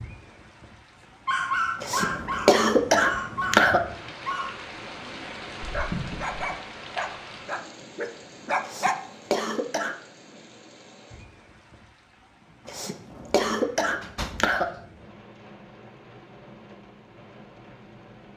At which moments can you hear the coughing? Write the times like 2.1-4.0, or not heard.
1.8-3.8, 8.6-9.9, 12.7-14.7.